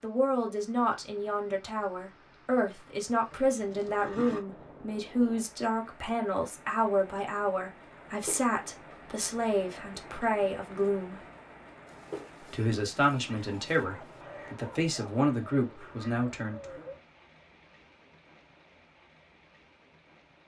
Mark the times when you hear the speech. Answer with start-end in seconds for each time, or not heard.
0.0-11.2, 12.4-16.8.